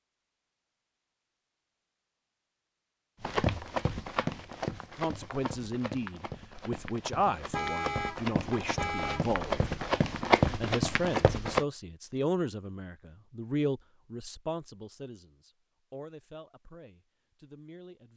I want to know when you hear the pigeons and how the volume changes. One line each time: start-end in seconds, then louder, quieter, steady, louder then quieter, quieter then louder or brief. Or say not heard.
not heard.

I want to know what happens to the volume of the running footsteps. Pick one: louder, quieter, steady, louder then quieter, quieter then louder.
quieter then louder.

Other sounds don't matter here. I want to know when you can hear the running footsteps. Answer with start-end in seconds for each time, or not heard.
3.2-11.7.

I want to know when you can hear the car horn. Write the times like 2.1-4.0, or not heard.
7.3-9.2.